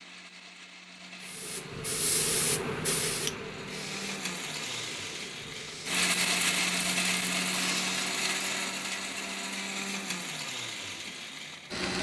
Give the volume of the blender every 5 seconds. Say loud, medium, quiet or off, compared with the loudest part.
medium, loud, medium.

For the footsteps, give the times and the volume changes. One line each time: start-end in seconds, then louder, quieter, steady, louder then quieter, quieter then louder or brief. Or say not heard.
not heard.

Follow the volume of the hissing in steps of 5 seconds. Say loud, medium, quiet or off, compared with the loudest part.
loud, medium, off.